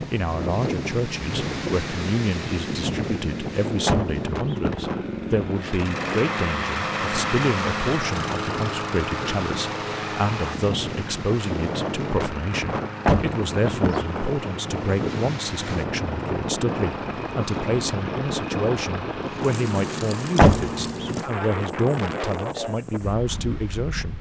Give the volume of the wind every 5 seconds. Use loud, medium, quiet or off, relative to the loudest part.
loud, medium, loud, loud, loud.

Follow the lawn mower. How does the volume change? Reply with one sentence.
The volume of the lawn mower goes up, then down.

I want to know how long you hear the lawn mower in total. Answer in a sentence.
The lawn mower can be heard for 21 seconds in total.